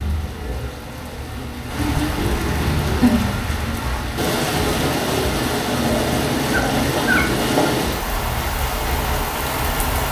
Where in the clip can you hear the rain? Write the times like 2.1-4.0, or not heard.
0.0-10.0.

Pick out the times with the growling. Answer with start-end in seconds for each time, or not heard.
2.1-3.3, 5.8-7.7.